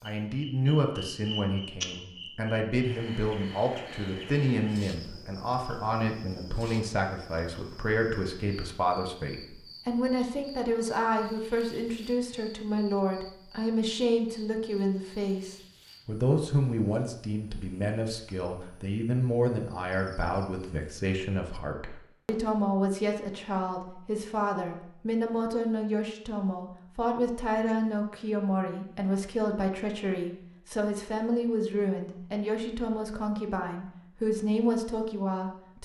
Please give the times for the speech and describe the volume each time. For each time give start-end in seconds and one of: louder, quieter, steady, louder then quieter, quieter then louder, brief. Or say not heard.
0.0-35.8 steady.